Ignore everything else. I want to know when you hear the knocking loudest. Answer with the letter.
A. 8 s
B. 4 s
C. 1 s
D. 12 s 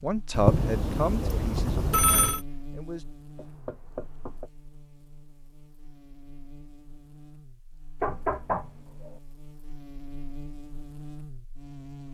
A.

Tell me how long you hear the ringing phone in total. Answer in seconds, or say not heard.
2 s.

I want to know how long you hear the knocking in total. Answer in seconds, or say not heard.
2 s.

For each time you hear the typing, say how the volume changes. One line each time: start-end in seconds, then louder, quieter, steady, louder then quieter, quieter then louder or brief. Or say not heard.
not heard.